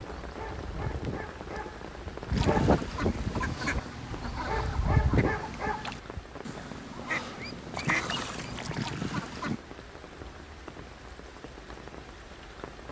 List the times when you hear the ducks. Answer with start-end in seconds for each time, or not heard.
2.3-9.6.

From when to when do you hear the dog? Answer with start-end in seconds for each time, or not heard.
0.1-6.2.